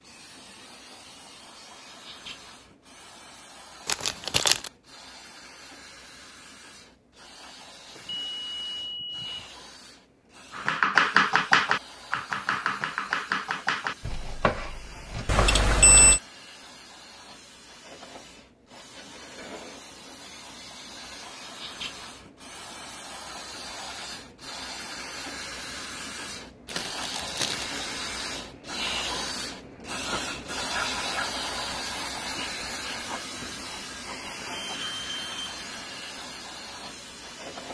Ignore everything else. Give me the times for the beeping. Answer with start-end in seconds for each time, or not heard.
8.0-9.4, 15.2-16.2, 34.5-35.6.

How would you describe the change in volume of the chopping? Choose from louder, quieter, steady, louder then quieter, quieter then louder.
quieter.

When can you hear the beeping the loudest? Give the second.
16 s.